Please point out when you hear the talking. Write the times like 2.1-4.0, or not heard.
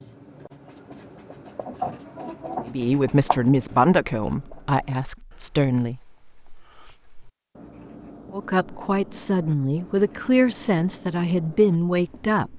2.6-6.0, 8.3-12.5.